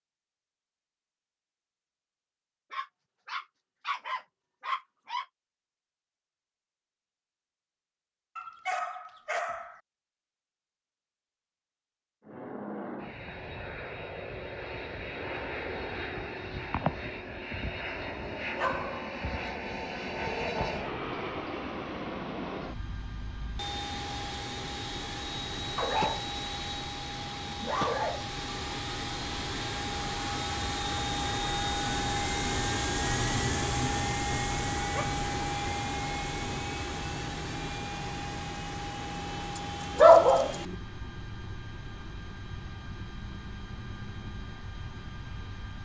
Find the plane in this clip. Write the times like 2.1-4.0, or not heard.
12.2-45.8.